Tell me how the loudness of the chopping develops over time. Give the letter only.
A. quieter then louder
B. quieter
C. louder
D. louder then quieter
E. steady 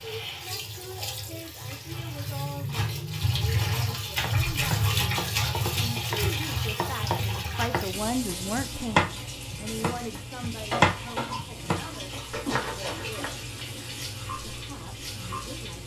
D.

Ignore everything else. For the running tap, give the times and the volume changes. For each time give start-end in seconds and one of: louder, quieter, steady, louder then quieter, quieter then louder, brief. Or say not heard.
0.0-15.8 louder then quieter.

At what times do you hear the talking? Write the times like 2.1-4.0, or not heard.
0.0-13.5, 14.3-15.8.